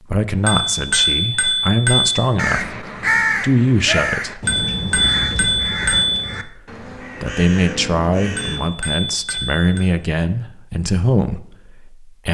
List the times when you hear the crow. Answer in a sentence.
The crow can be heard from 2.4 to 8.7 s.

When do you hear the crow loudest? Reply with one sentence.
The volume of the crow peaks at 3 seconds.